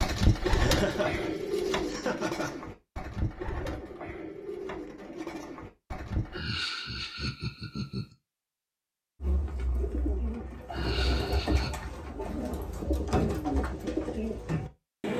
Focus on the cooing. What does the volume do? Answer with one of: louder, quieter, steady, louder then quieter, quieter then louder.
quieter then louder.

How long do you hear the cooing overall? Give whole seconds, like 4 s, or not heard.
12 s.